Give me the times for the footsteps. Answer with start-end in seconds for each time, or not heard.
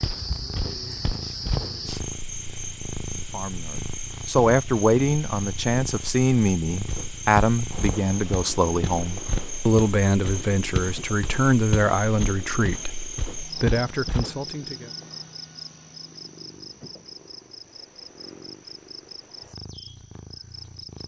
0.0-2.1, 6.8-14.3.